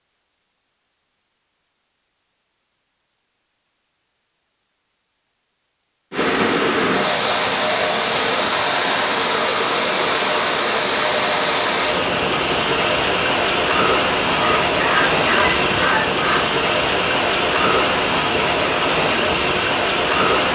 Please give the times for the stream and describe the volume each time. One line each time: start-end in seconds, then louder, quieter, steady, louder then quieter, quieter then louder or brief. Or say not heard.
6.1-20.5 steady.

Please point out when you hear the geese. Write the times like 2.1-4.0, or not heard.
14.3-16.4.